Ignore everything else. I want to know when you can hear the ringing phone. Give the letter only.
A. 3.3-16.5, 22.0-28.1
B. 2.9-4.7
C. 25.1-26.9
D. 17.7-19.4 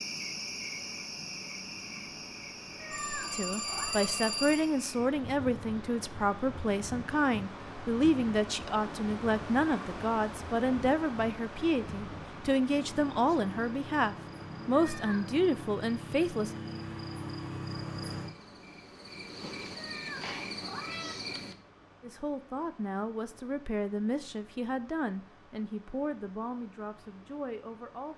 B.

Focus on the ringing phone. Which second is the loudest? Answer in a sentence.
The loudest moment of the ringing phone is at 4 seconds.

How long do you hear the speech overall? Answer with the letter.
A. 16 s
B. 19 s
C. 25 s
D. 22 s
B.